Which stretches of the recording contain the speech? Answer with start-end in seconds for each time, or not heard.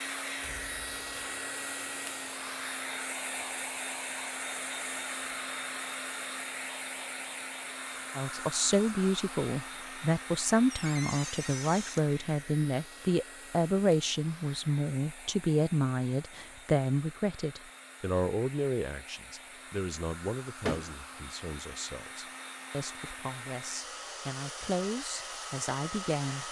8.2-26.4.